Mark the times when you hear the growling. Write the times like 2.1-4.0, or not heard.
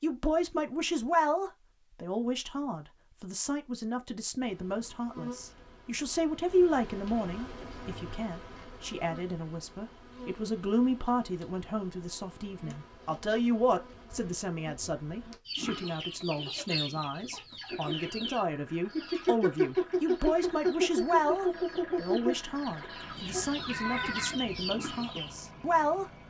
not heard.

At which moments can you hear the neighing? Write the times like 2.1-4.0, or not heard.
22.8-24.4.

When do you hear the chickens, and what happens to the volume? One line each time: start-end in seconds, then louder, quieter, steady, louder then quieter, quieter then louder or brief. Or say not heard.
15.4-25.3 louder then quieter.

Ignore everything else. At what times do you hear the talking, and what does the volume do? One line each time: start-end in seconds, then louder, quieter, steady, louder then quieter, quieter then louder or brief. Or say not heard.
0.0-26.1 steady.